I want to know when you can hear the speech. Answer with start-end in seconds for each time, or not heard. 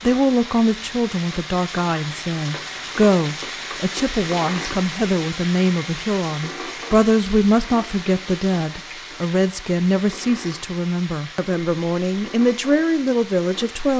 0.0-13.9.